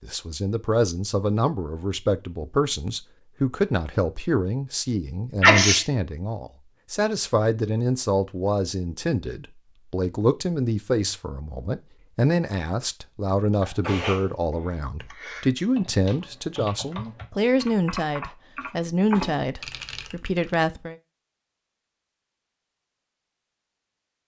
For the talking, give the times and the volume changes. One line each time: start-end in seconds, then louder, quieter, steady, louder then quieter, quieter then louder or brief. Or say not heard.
0.0-20.9 steady.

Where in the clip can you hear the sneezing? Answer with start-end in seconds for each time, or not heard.
5.4-5.8, 13.6-14.7.